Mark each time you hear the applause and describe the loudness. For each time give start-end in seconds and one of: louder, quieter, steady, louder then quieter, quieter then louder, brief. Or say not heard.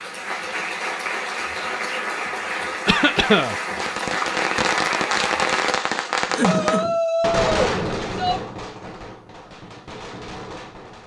0.0-5.8 steady.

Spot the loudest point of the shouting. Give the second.
7 s.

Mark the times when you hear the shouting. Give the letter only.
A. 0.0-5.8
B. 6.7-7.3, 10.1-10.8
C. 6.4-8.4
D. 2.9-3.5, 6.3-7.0
C.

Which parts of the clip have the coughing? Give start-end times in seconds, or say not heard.
2.9-3.5, 6.3-7.0.